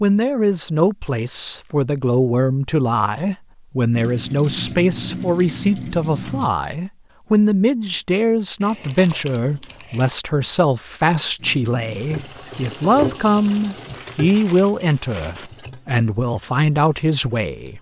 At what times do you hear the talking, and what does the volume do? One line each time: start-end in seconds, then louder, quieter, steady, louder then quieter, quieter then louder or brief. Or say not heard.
0.0-17.7 steady.